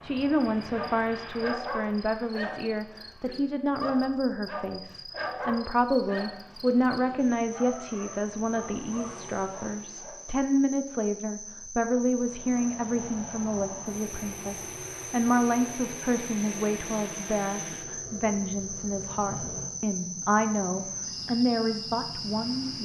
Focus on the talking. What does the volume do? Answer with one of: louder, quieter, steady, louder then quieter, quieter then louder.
steady.